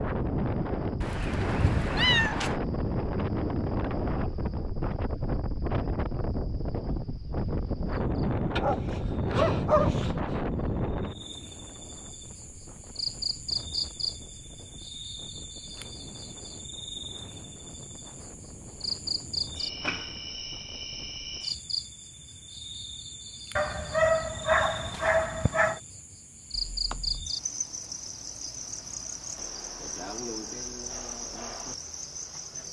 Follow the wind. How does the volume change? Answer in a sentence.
The loudness of the wind goes down.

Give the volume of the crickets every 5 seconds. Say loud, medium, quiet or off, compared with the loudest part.
quiet, quiet, loud, loud, loud, loud, loud.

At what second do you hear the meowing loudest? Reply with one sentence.
The loudest moment of the meowing is at 2 seconds.